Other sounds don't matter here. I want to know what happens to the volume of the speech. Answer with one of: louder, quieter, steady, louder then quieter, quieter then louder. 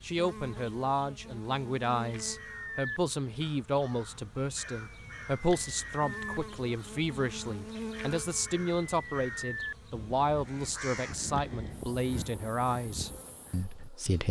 steady.